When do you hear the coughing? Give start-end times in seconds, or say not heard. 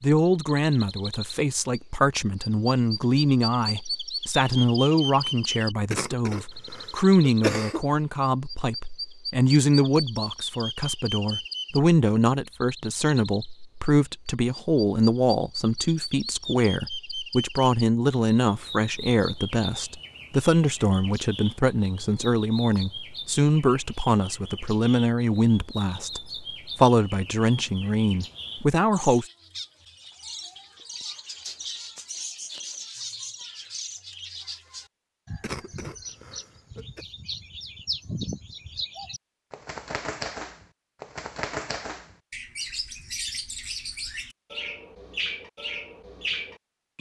5.9-7.8, 35.4-37.0.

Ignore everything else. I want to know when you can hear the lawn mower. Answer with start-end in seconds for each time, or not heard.
not heard.